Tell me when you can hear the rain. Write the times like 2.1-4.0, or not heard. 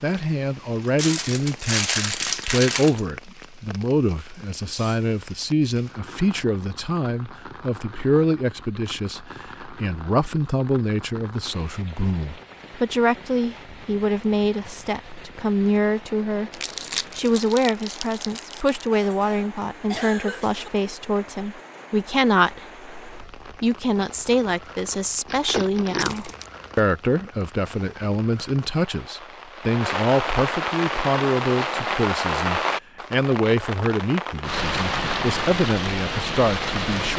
0.0-37.1.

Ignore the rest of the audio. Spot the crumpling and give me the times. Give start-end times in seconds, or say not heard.
0.9-3.0, 16.5-18.8, 25.2-26.5.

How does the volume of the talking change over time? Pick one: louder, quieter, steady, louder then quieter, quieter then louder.
steady.